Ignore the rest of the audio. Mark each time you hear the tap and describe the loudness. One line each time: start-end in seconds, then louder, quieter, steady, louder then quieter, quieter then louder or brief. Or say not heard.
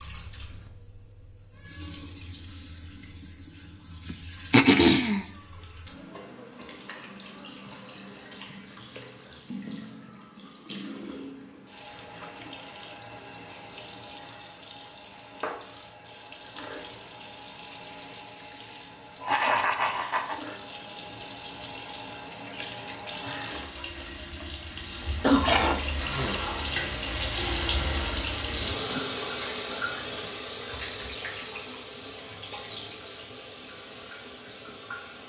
0.0-35.2 louder.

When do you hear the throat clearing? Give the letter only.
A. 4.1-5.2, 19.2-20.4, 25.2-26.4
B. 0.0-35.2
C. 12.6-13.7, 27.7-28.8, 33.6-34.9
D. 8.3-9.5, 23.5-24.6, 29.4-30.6
A.